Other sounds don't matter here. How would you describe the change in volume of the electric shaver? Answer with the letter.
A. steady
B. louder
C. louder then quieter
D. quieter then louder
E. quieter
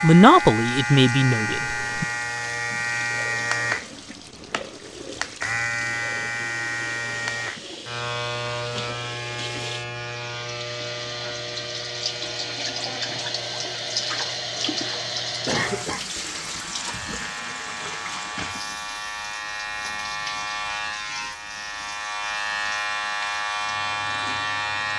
D.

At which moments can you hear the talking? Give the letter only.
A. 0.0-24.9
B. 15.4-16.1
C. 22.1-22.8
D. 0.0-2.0
D.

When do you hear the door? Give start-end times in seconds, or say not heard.
not heard.